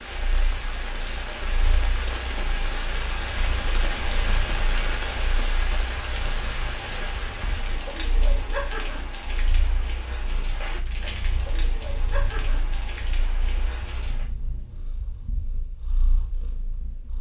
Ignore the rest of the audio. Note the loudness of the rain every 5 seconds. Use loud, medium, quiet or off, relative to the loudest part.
loud, loud, medium, off.